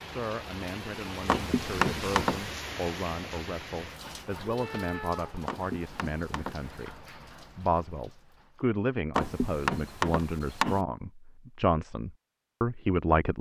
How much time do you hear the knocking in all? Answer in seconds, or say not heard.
4 s.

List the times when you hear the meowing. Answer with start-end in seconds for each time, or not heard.
4.4-5.3.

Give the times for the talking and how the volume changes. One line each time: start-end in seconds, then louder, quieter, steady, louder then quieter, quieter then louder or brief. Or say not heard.
0.1-13.3 louder.